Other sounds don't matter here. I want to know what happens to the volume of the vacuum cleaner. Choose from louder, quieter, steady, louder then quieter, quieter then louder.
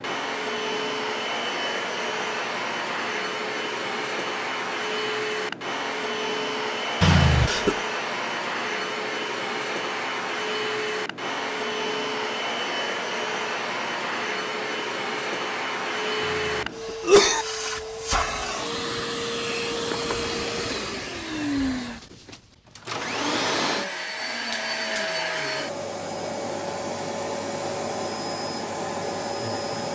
steady.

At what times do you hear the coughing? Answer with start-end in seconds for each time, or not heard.
7.0-7.8, 16.2-17.4.